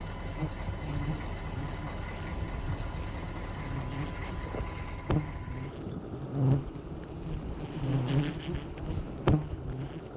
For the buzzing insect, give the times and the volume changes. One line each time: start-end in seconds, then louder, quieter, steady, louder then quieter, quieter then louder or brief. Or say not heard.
0.2-10.1 louder.